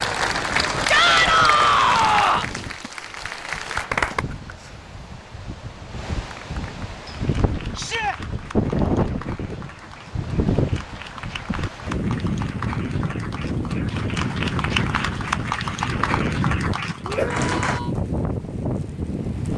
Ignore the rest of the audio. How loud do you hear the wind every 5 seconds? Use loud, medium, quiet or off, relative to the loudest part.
medium, loud, loud, loud.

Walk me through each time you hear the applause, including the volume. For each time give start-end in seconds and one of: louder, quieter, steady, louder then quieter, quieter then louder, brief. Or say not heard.
0.0-4.2 quieter then louder
6.2-17.8 louder.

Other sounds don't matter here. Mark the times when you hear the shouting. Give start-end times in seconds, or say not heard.
0.8-2.5, 7.8-8.2, 17.1-17.9.